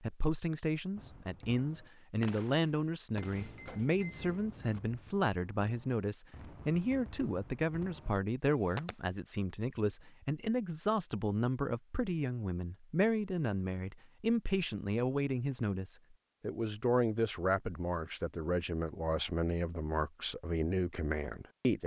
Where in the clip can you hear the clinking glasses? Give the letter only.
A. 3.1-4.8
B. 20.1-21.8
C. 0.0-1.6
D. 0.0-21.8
A.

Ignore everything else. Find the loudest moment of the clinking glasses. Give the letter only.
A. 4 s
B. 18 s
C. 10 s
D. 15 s
A.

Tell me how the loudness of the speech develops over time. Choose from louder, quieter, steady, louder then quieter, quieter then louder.
steady.